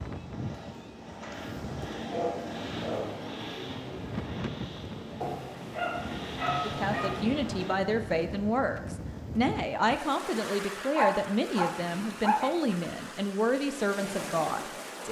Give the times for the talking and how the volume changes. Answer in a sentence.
The talking can be heard from 6.6 to 15.0 s, at a steady volume.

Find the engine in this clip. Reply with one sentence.
You can hear the engine from 0.2 to 7.8 s.